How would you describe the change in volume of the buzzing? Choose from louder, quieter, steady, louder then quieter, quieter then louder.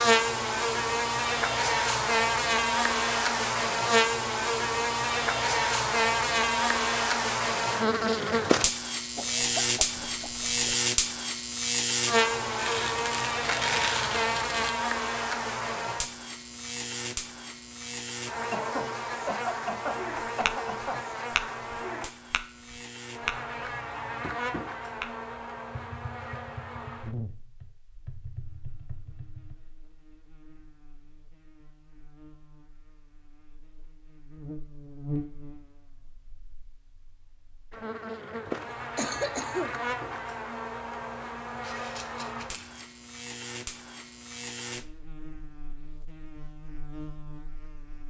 quieter then louder.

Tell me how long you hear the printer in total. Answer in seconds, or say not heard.
not heard.